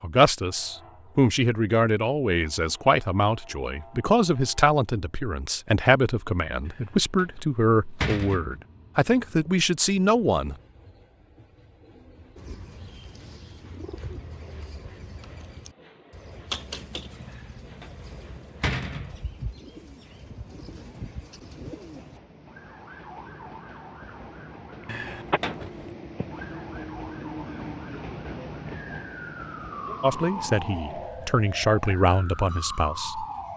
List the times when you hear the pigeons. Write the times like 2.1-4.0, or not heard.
12.3-22.2.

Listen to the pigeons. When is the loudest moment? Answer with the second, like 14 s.
17 s.